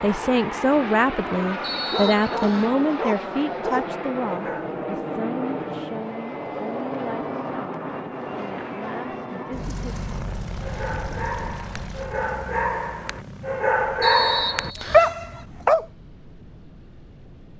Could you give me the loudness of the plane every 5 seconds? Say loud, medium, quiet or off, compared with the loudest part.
loud, loud, medium, quiet.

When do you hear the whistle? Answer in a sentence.
The whistle can be heard from 1.6 to 2.8 s and from 14.0 to 15.2 s.